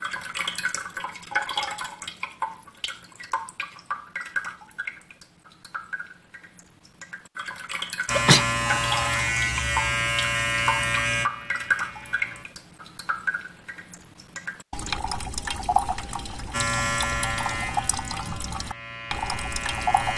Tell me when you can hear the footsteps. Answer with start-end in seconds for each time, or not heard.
not heard.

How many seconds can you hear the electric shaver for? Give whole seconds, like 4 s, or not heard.
8 s.